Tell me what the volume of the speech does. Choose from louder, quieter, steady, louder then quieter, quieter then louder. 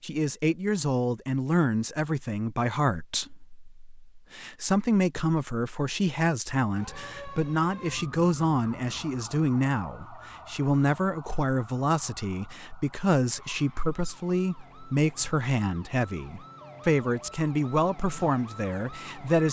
steady.